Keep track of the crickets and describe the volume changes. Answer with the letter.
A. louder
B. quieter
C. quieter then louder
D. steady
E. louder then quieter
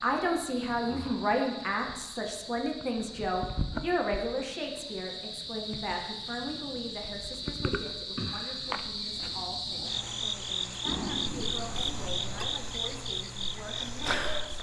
A.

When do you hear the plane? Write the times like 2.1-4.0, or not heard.
10.8-12.6.